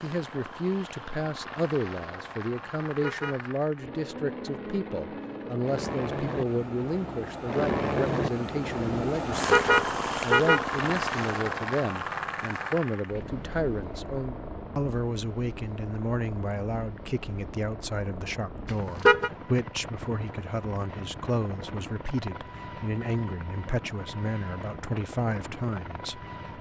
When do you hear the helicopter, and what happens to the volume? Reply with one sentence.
You can hear the helicopter from 0.0 to 26.5 s, getting louder then quieter.